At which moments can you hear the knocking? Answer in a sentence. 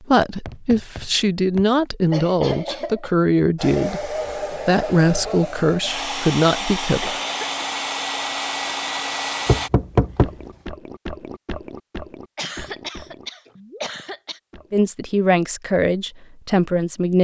The knocking can be heard from 0.5 to 1.6 s and from 9.4 to 10.4 s.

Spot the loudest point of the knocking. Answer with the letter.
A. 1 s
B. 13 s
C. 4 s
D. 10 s
D.